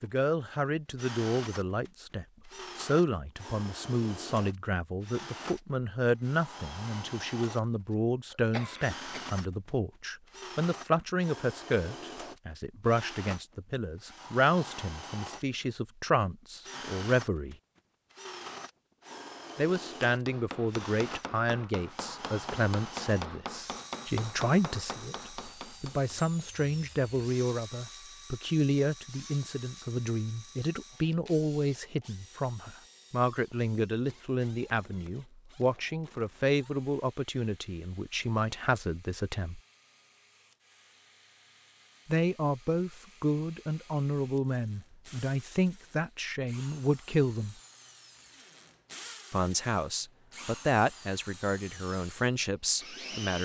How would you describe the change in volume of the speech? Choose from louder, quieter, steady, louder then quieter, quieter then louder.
steady.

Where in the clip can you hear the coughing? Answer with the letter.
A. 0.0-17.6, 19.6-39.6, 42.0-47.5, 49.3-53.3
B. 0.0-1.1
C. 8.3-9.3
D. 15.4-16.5
C.